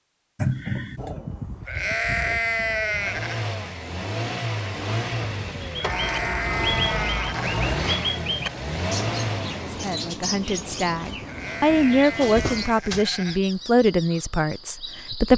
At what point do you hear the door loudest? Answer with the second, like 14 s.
1 s.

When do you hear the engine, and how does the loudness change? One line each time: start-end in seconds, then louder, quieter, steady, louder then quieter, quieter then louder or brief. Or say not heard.
2.9-10.2 steady.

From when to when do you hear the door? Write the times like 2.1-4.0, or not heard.
0.3-1.2, 5.8-7.8, 12.2-13.1.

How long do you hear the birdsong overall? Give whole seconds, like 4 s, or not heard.
10 s.